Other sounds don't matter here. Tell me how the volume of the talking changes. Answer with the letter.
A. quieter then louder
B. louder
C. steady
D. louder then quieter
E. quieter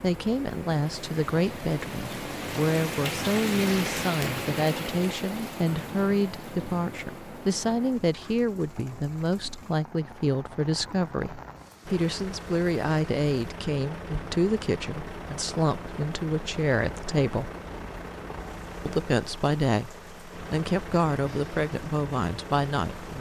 C.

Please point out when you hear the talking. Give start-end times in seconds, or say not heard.
0.0-17.5, 18.9-23.1.